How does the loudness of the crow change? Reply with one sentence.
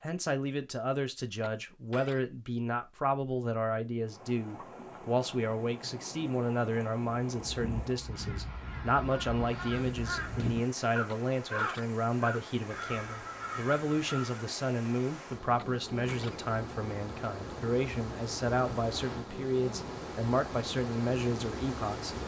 The loudness of the crow goes up, then down.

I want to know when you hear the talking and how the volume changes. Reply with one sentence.
The talking can be heard from 0.0 to 22.1 s, at a steady volume.